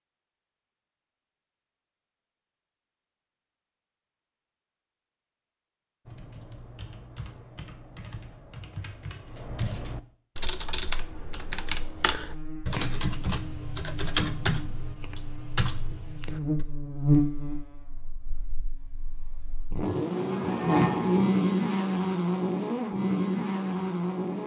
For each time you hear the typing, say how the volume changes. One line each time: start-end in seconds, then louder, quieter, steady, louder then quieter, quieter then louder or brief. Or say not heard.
6.0-16.6 louder.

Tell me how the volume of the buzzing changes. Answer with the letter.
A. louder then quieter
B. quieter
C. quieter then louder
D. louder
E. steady
D.